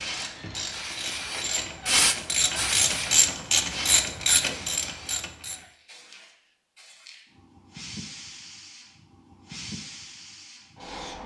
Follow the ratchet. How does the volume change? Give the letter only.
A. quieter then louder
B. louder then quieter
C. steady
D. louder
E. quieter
D.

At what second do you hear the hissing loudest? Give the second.
2 s.